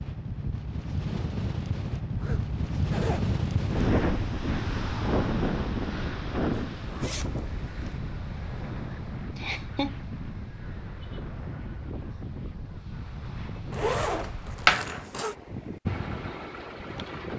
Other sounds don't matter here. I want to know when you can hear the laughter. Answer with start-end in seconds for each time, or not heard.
9.3-9.9.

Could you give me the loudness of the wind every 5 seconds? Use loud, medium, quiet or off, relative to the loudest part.
loud, loud, medium, medium.